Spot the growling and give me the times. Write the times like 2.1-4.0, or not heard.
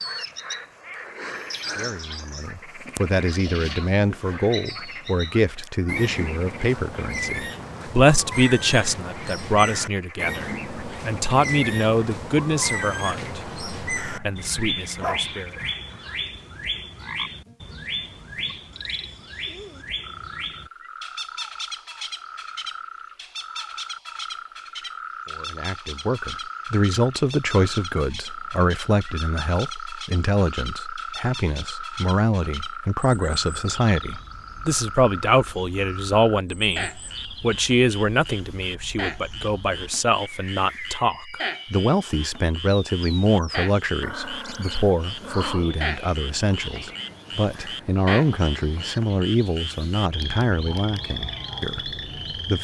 14.1-16.1, 44.0-45.8.